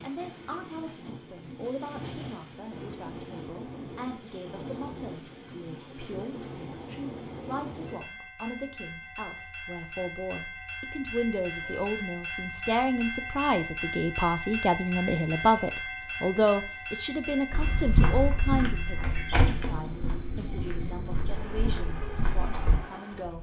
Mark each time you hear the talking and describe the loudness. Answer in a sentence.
You can hear the talking from 0.0 to 23.3 s, getting louder then quieter.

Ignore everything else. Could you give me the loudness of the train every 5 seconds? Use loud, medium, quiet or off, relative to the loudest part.
medium, medium, loud, loud, medium.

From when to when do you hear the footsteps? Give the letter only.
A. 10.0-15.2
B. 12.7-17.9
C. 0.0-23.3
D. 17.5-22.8
D.